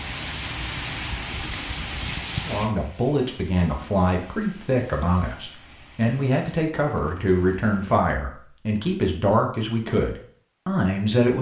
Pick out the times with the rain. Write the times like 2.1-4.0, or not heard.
0.0-8.0.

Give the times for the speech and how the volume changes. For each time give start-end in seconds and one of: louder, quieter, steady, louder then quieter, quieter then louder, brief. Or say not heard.
2.4-11.3 steady.